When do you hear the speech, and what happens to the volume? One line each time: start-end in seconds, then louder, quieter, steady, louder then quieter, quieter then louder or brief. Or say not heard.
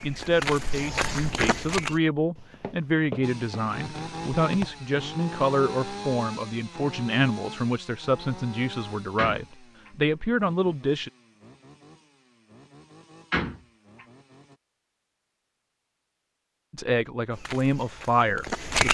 0.0-11.1 steady
16.7-18.9 brief.